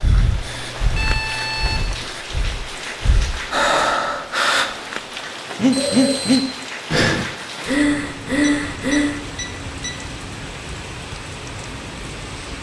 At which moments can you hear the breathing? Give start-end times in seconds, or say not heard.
0.0-9.2.